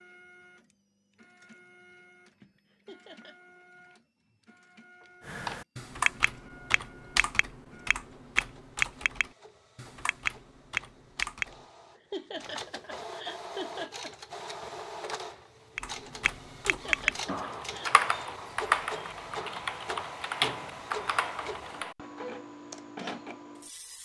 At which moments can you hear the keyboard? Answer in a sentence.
The keyboard can be heard from 5.2 to 11.7 s and from 15.8 to 21.9 s.